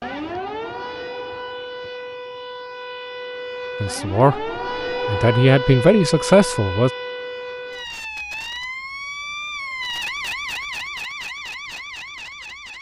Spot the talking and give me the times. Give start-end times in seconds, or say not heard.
3.8-6.9.